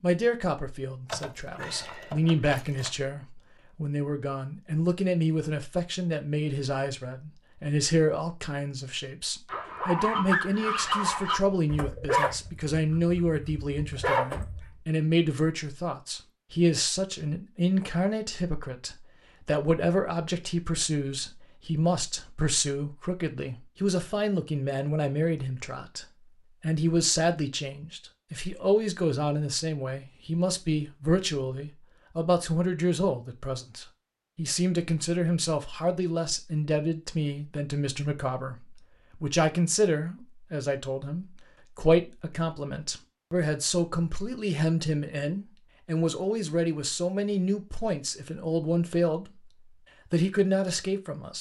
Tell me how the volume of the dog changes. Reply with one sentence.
The volume of the dog goes down, then up.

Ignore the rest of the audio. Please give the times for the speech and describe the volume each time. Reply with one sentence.
The speech can be heard from 0.0 to 49.4 s, at a steady volume; and briefly from 50.1 to 51.3 s.